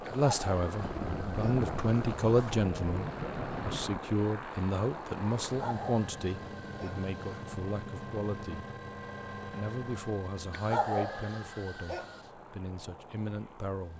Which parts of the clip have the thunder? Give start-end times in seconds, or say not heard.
0.8-4.0.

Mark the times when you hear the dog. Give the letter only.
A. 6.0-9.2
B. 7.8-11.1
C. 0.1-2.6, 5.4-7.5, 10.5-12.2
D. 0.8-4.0
C.